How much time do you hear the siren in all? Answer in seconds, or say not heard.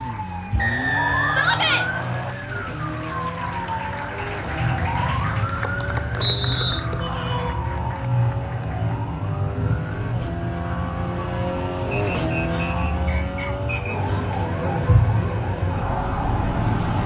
17 s.